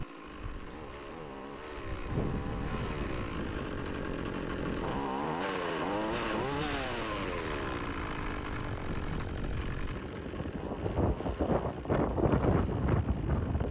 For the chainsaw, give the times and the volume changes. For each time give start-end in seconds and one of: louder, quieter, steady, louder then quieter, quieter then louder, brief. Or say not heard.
0.0-13.6 louder then quieter.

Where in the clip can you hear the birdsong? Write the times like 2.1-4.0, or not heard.
not heard.